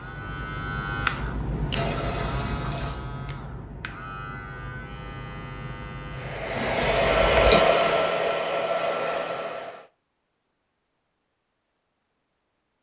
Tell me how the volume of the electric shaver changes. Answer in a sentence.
The loudness of the electric shaver goes down.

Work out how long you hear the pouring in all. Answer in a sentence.
You can hear the pouring for 2 seconds altogether.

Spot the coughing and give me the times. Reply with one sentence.
The coughing can be heard from 6.5 to 7.6 s.